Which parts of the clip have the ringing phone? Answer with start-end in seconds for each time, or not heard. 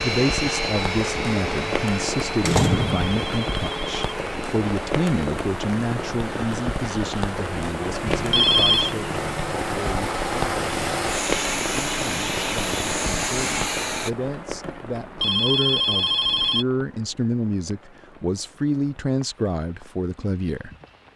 2.6-4.2, 8.3-8.9, 15.2-16.6.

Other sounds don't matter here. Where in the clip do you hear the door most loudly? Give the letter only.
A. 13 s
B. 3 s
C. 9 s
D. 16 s
B.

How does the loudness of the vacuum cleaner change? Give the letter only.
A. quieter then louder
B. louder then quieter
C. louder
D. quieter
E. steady
A.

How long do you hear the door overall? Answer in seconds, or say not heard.
3 s.